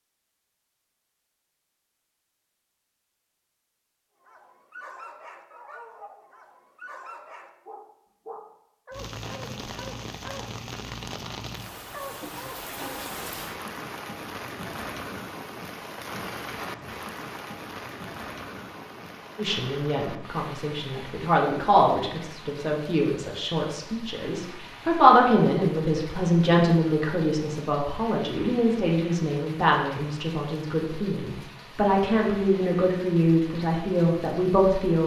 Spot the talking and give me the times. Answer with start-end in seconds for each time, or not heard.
19.4-35.0.